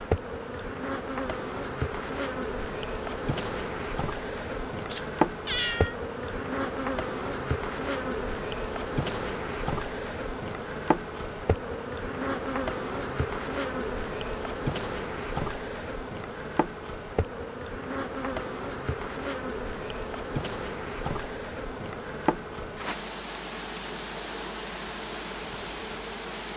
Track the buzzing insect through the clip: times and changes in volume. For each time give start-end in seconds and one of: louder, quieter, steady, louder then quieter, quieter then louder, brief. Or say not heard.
0.0-26.5 steady.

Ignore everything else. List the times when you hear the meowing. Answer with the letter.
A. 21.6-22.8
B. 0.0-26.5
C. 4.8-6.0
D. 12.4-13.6
C.